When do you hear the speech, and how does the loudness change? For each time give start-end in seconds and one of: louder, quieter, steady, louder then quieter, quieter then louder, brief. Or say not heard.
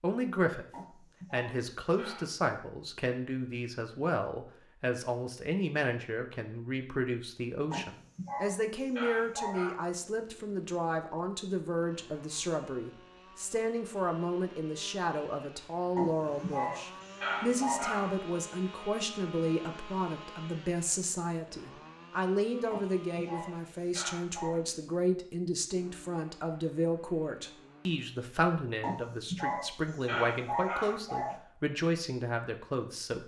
0.0-0.7 brief
1.3-33.2 steady.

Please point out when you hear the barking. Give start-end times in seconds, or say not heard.
0.7-2.4, 7.7-9.8, 15.9-18.2, 22.7-24.6, 28.8-31.4.